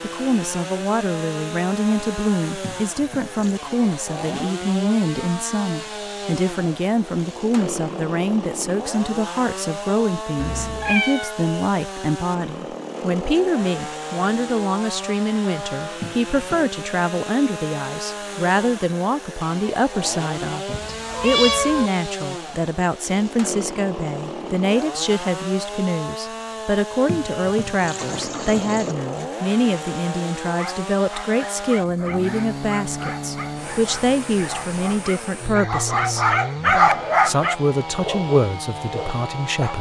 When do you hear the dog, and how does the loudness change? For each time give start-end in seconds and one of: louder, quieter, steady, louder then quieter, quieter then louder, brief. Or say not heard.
30.5-39.7 louder then quieter.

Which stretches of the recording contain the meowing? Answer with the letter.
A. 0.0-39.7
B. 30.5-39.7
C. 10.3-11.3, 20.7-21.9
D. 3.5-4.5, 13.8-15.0
C.